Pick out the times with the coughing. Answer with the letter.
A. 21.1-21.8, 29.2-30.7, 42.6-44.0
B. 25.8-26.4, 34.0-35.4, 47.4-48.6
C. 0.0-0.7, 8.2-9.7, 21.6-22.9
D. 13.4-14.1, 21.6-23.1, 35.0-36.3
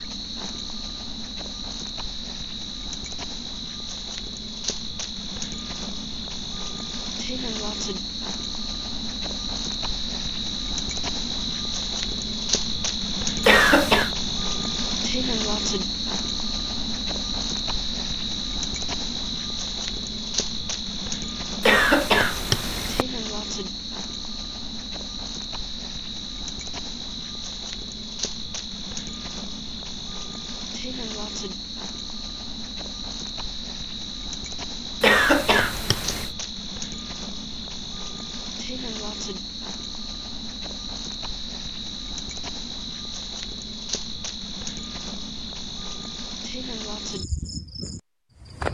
D.